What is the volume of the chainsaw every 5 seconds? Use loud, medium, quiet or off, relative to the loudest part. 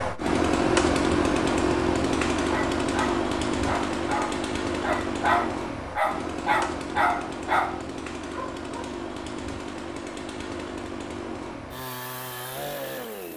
loud, medium, medium.